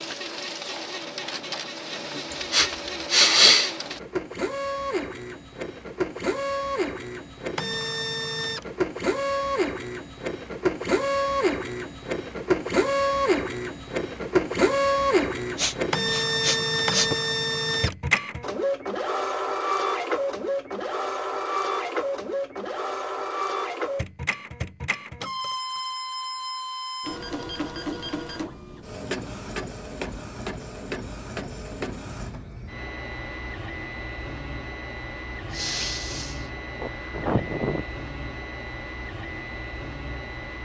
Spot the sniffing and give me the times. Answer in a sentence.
You can hear the sniffing from 2.3 to 3.8 s, from 15.3 to 17.1 s and from 35.5 to 37.9 s.